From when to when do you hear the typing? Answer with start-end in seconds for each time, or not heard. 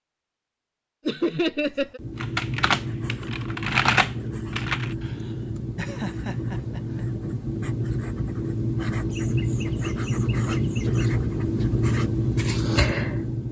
2.1-5.0.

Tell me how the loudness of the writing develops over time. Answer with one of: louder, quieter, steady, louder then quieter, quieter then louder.
louder.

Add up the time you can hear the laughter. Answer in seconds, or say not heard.
5 s.